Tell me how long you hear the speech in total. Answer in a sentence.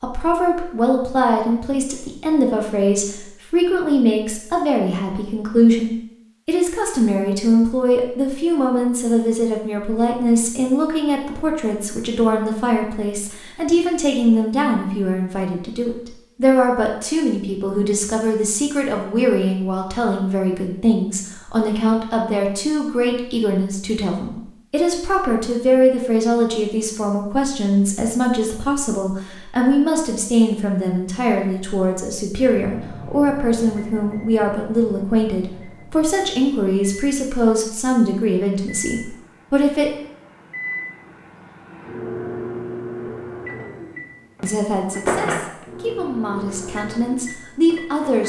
You can hear the speech for 44 seconds altogether.